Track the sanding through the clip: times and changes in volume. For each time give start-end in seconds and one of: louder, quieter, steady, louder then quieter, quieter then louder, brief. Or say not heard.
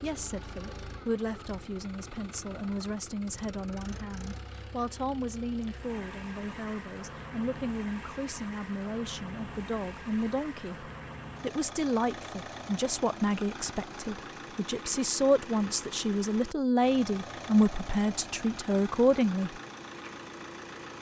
not heard.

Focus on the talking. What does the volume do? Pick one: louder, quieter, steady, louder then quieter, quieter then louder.
louder.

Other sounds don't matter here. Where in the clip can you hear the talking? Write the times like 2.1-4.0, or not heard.
0.0-19.6.